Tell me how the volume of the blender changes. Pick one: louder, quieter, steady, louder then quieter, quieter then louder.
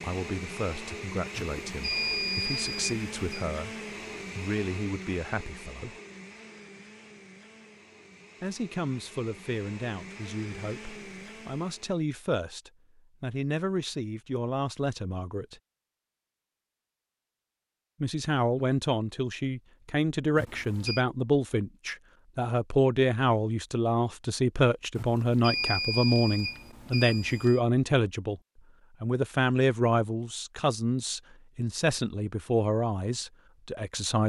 quieter then louder.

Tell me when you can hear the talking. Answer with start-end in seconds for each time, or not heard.
0.0-3.8, 4.3-6.0, 8.4-15.6, 18.0-28.4, 29.0-34.2.